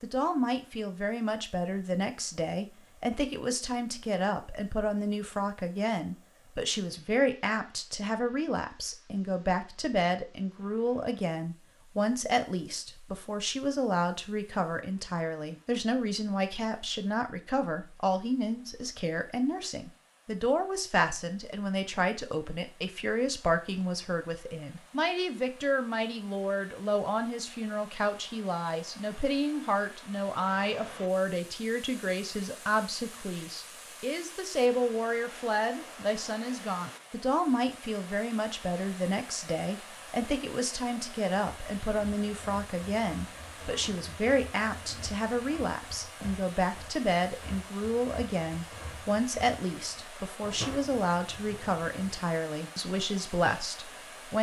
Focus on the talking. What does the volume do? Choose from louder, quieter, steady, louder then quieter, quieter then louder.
steady.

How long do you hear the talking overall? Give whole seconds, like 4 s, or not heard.
54 s.